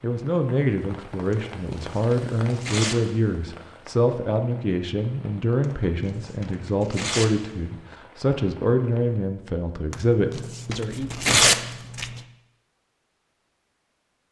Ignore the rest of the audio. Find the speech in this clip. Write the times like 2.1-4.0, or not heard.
0.0-11.2.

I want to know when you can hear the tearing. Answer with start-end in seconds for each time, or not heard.
1.3-3.0, 5.6-7.5, 9.9-12.2.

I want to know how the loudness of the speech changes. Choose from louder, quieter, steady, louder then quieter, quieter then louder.
steady.